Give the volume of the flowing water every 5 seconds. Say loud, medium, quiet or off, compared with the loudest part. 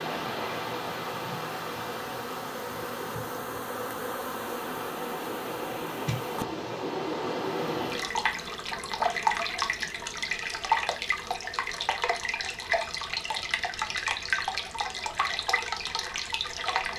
medium, loud, loud, loud.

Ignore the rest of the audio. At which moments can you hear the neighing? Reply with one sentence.
You can't hear the neighing here.